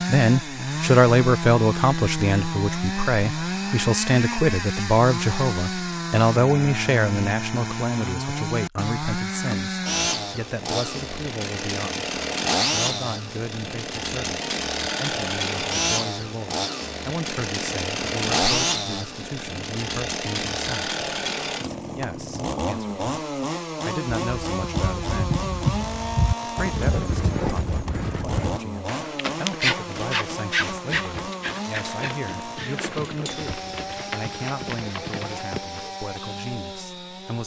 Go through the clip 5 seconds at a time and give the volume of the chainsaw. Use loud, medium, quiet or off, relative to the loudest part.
loud, loud, loud, loud, loud, medium, medium, medium.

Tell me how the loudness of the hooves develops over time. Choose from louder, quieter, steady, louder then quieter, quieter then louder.
quieter.